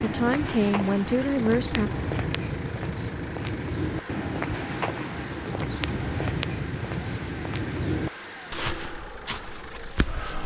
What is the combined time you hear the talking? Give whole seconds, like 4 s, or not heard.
2 s.